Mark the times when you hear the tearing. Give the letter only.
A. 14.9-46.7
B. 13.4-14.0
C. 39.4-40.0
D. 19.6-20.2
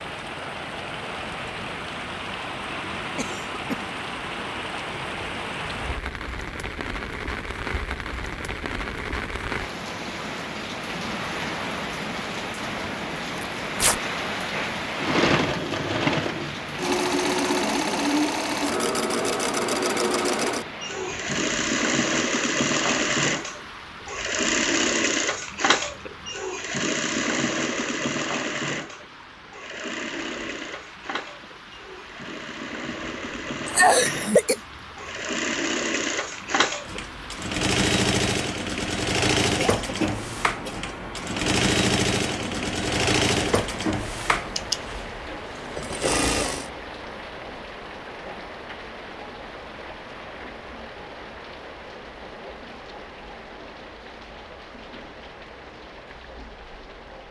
B.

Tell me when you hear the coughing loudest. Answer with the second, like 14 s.
34 s.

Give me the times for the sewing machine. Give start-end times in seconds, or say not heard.
14.9-46.7.